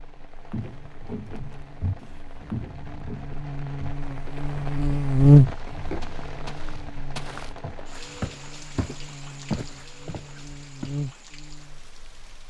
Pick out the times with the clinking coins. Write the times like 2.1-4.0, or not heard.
not heard.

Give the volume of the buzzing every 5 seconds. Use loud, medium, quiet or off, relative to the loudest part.
quiet, loud, quiet.